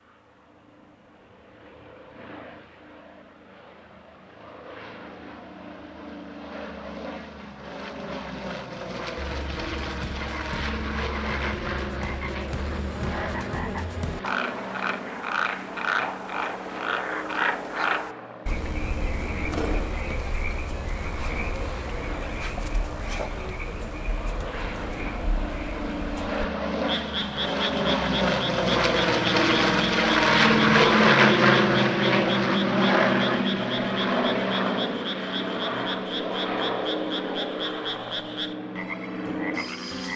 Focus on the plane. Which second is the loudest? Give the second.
31 s.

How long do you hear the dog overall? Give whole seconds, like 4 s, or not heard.
not heard.